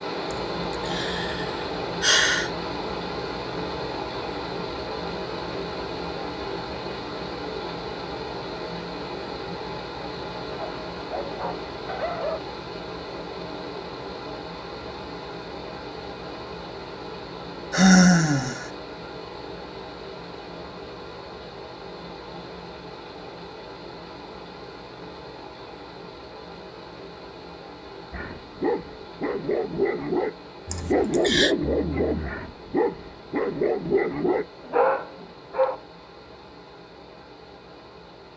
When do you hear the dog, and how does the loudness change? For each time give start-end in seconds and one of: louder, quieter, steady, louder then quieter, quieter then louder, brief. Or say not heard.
10.6-12.4 brief
28.1-35.8 steady.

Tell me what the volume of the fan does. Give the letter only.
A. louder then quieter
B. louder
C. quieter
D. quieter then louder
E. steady
C.